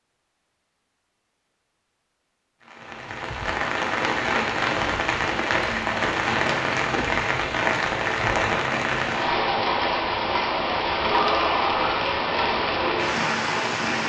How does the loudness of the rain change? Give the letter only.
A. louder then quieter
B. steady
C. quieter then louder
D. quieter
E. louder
B.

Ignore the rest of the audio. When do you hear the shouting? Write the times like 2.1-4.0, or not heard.
11.0-11.9.